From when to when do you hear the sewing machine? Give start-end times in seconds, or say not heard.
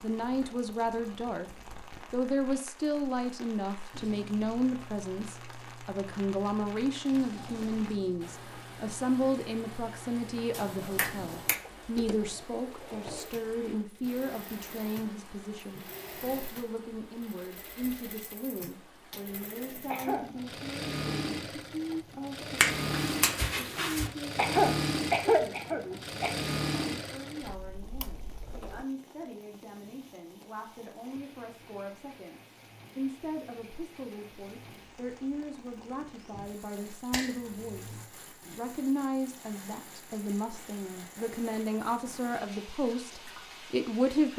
3.9-28.9.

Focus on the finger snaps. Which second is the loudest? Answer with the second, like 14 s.
23 s.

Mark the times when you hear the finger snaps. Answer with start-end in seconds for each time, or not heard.
10.5-11.6, 22.6-24.1, 37.1-38.1.